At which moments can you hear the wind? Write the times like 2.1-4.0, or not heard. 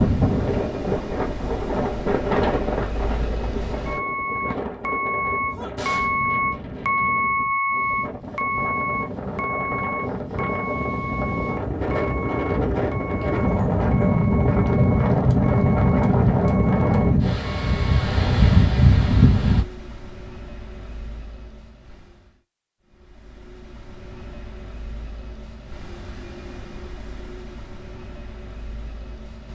0.0-19.6.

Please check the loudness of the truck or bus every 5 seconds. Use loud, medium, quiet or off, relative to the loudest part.
medium, loud, medium, quiet, quiet, quiet.